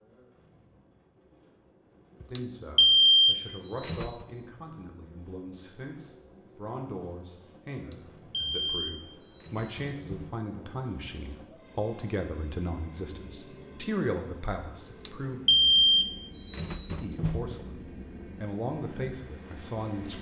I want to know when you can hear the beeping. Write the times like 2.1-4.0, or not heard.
2.2-4.2, 7.8-10.3, 14.9-17.6.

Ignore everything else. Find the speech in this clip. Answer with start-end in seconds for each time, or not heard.
2.3-15.4, 17.0-20.1.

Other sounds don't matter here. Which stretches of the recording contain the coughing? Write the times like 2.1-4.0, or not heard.
not heard.